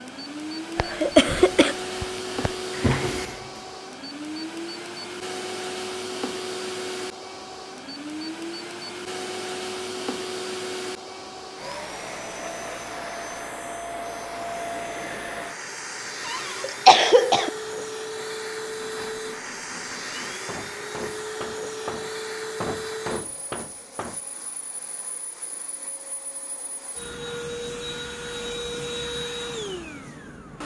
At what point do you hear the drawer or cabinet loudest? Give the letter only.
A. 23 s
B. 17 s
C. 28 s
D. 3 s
D.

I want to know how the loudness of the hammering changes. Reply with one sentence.
The loudness of the hammering goes up.